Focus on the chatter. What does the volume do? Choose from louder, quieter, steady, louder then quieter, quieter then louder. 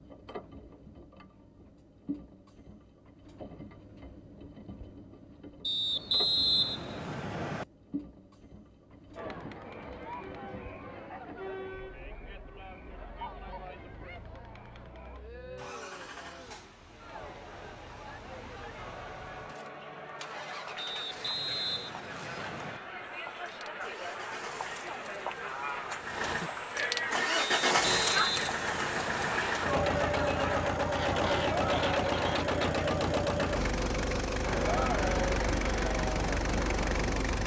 louder.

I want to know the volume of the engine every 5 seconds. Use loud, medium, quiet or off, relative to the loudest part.
quiet, quiet, quiet, quiet, quiet, loud, loud, loud.